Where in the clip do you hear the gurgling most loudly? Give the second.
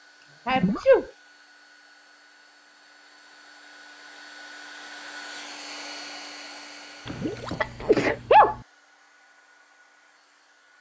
1 s.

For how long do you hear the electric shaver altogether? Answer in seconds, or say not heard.
not heard.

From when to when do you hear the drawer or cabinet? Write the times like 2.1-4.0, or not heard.
not heard.